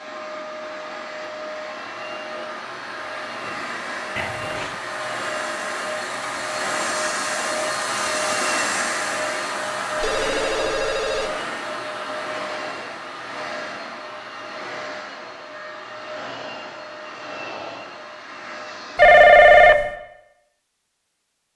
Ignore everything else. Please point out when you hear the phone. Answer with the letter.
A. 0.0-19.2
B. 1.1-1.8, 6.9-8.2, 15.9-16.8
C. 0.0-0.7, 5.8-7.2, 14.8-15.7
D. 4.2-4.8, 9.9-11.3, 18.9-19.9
D.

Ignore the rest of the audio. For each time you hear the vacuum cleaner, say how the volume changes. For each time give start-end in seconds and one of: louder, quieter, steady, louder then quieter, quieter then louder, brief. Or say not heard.
0.0-19.2 louder then quieter.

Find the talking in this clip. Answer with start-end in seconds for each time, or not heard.
not heard.